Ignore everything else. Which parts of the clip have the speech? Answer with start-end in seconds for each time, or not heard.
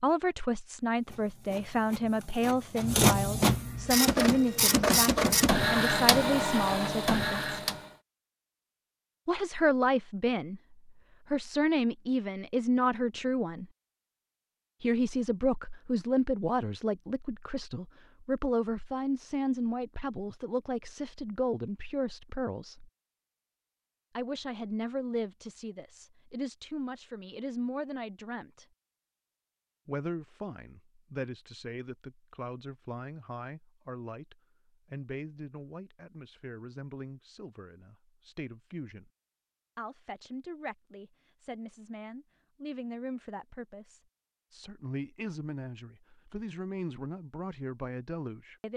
0.0-7.5, 9.2-13.7, 14.8-22.9, 24.1-28.6, 29.9-39.1, 39.8-48.7.